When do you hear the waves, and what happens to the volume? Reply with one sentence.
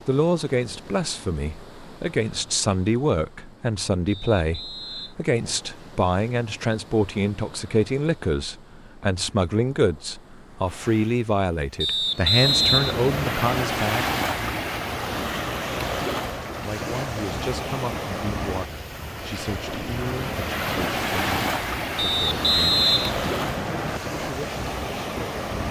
The waves can be heard from 0.0 to 25.6 s, getting louder.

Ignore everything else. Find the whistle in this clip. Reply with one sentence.
You can hear the whistle from 4.0 to 5.2 s, from 11.8 to 13.3 s and from 21.9 to 24.0 s.